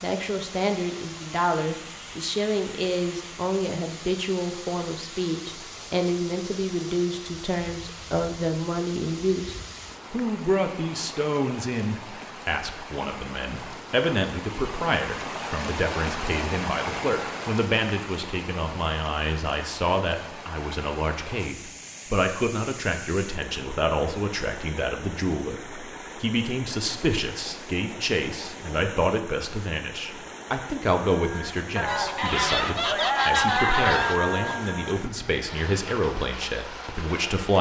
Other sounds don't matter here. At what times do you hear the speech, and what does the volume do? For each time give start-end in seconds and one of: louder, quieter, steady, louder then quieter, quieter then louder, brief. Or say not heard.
0.0-37.5 steady.